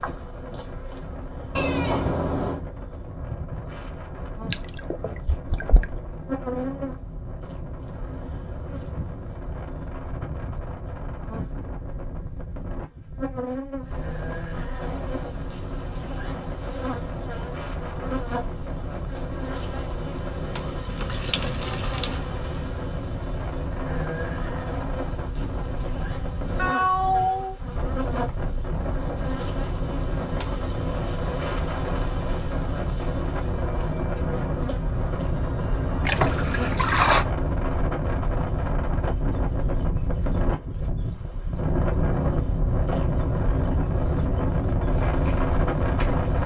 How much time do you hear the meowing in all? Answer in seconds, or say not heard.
2 s.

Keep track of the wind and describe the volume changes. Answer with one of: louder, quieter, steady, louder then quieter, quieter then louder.
louder.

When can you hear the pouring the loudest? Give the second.
37 s.